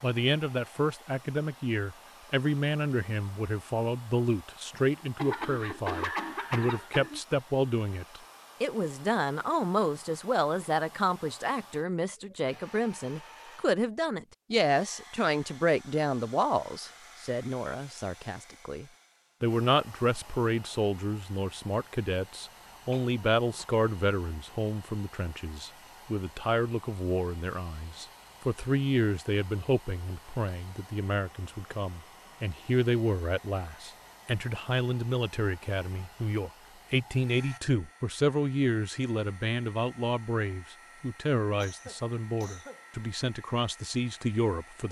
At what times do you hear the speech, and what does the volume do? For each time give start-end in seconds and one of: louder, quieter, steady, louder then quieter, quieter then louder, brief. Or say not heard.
0.0-44.8 steady.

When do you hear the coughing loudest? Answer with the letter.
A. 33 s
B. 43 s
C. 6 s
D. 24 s
C.